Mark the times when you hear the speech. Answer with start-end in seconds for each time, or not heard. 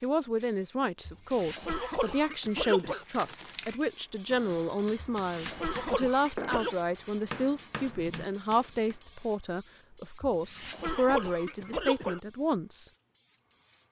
0.0-12.9.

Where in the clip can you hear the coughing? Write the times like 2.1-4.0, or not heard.
1.1-3.0, 5.0-6.8, 10.2-12.2.